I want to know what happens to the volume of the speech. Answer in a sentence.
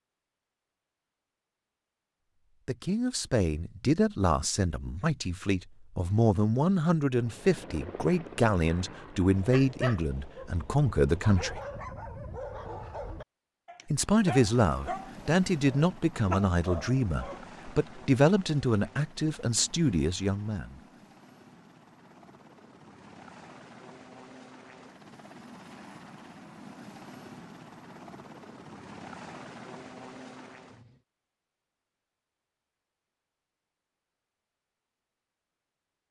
The loudness of the speech stays about the same.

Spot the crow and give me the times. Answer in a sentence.
You can't hear the crow here.